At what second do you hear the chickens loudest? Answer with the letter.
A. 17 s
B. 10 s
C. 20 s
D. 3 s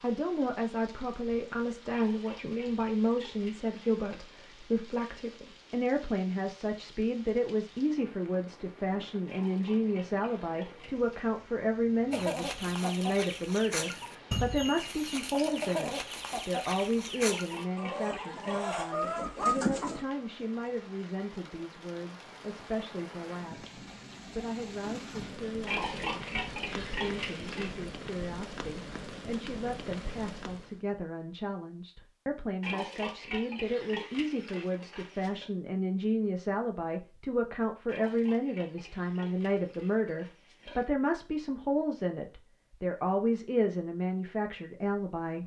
C.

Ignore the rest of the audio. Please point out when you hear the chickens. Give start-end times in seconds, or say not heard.
12.1-20.1.